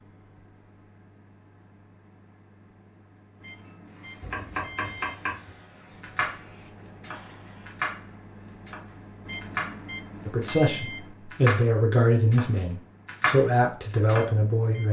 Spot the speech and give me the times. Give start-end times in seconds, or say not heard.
10.2-14.8.